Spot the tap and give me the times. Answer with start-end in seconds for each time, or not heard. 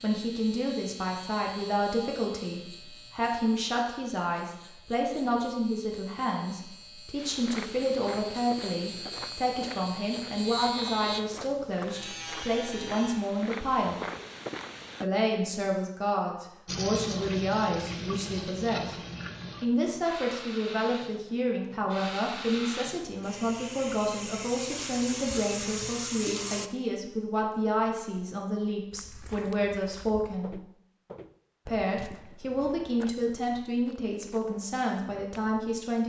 16.6-26.7.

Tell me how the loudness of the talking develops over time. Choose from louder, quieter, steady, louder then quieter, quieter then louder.
steady.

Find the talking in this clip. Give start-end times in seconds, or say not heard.
0.0-14.0, 15.0-18.9, 19.6-30.6, 31.6-36.0.